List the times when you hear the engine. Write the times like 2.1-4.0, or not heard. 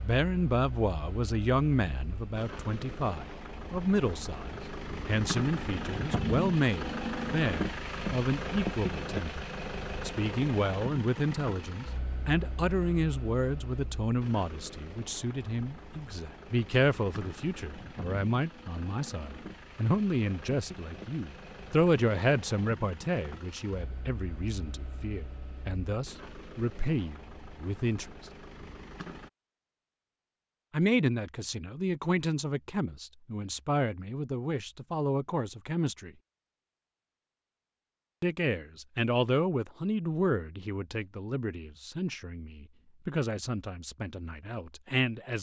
0.0-29.3.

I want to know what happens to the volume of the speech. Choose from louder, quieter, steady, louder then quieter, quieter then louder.
steady.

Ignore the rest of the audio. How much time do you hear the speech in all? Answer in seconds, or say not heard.
40 s.